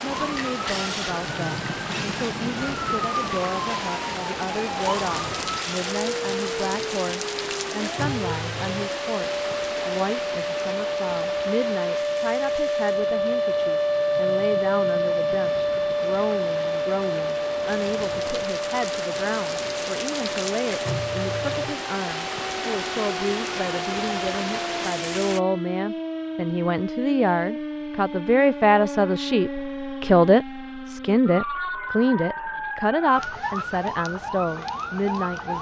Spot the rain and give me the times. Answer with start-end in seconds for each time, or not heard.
0.0-25.4.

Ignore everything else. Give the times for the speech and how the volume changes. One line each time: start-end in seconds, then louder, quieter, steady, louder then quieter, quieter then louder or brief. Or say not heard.
0.0-35.5 louder.